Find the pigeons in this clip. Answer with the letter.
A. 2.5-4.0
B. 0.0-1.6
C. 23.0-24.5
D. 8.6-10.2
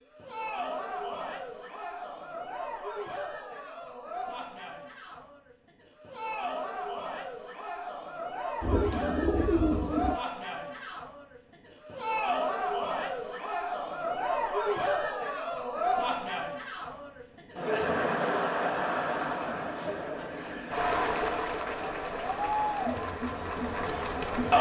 D.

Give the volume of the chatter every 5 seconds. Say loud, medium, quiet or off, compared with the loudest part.
medium, medium, loud, loud, loud.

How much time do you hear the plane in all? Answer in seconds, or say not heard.
not heard.